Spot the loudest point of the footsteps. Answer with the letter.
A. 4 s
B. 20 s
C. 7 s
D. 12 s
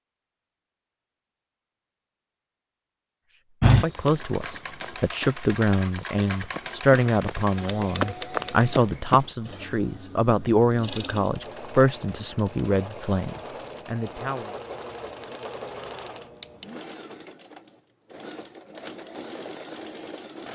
A.